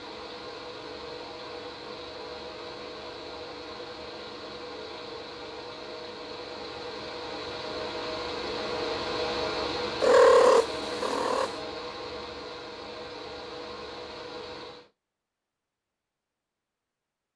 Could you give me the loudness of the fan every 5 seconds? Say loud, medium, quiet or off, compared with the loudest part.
medium, loud, loud, off.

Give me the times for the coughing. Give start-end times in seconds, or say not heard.
not heard.